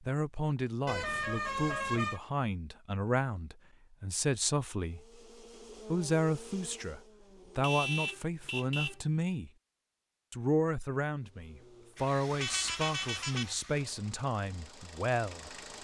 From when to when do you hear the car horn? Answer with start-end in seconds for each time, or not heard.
0.8-2.2, 7.6-9.0, 12.3-13.6.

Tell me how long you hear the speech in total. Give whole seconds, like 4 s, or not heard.
14 s.